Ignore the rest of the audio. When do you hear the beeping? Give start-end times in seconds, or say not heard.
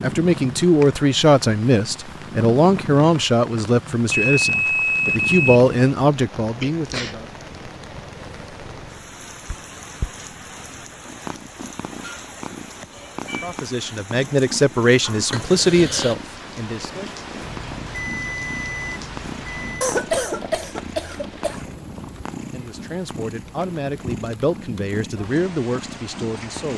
4.1-5.4, 17.4-19.9.